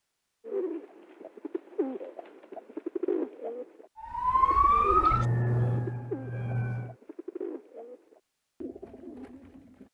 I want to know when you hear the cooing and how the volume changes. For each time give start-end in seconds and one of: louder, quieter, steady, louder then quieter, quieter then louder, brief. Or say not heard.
0.5-9.9 louder then quieter.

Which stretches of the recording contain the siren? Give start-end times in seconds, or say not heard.
4.0-7.0.